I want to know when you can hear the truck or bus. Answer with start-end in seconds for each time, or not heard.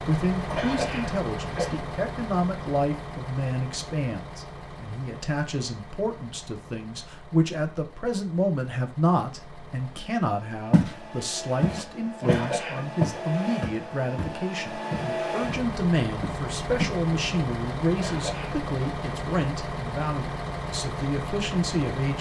0.0-22.1.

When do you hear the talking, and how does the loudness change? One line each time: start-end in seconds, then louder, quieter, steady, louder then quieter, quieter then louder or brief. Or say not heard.
0.1-22.1 steady.